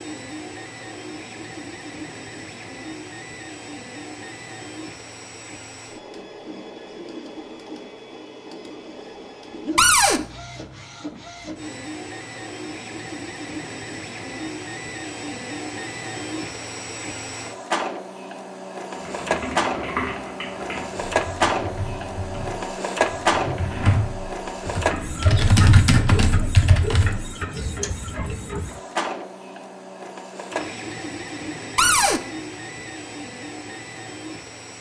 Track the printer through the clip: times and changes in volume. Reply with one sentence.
You can hear the printer from 0.0 to 34.7 s, getting louder then quieter.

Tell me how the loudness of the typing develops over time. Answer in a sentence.
The volume of the typing goes down, then up.